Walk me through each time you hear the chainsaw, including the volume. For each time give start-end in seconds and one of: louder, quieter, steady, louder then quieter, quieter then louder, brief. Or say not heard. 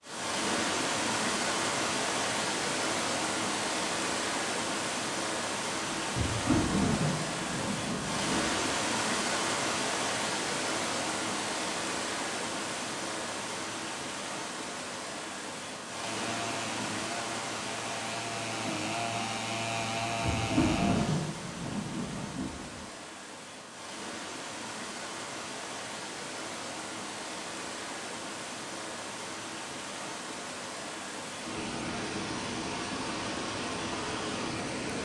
15.9-21.4 louder.